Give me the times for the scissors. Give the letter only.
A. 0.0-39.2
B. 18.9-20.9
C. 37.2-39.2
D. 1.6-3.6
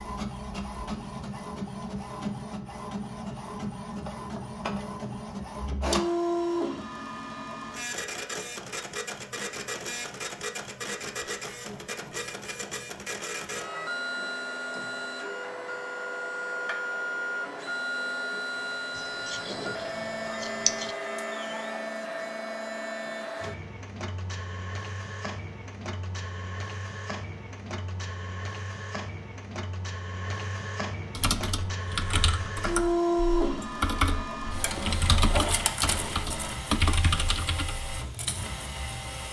B.